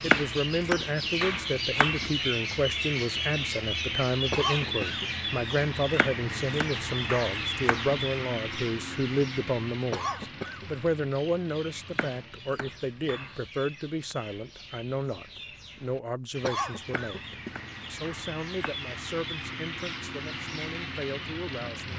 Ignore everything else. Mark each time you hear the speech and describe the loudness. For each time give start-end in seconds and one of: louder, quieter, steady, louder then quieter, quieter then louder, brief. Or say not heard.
0.0-21.9 quieter.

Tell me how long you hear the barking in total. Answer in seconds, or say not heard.
not heard.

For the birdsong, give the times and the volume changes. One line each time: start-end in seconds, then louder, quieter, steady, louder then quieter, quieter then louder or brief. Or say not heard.
0.0-21.9 quieter then louder.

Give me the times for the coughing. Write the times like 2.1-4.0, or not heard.
4.3-5.1, 9.9-10.7, 16.4-17.6.